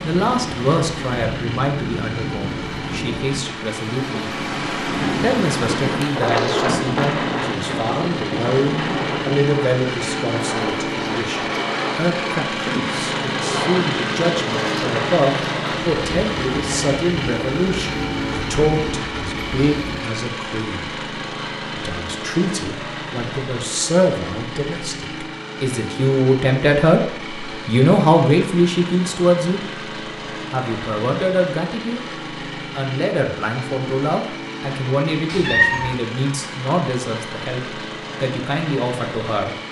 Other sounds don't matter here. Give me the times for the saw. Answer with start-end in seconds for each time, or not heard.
not heard.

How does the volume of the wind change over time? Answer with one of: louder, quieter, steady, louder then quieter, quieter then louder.
louder then quieter.